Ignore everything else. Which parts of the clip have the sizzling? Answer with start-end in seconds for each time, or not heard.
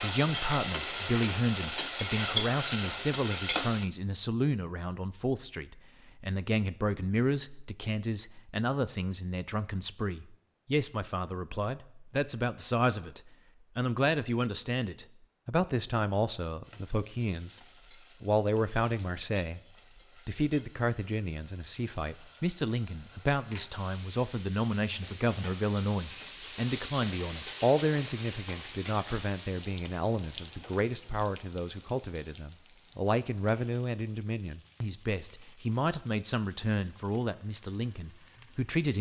0.0-3.9, 16.6-38.8.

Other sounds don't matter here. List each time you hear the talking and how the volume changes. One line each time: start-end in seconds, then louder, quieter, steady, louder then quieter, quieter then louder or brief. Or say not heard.
0.0-17.6 steady
18.2-19.6 brief
20.2-38.9 steady.